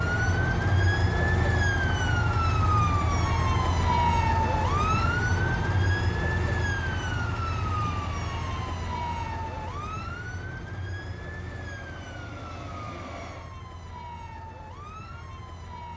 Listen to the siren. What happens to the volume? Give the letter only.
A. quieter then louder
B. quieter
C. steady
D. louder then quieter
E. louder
B.